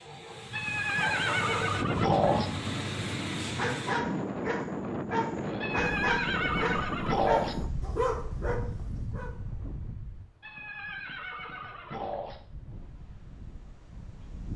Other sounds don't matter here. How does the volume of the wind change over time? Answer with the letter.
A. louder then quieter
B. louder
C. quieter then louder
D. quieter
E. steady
D.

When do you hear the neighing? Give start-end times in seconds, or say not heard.
0.5-2.5, 5.6-7.5, 10.4-12.4.